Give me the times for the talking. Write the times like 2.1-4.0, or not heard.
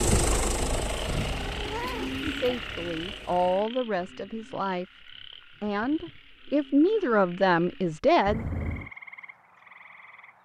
2.2-4.8, 5.6-8.4.